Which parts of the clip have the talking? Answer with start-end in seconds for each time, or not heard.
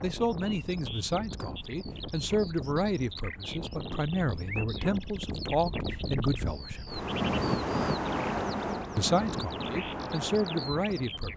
0.0-7.0, 8.9-11.3.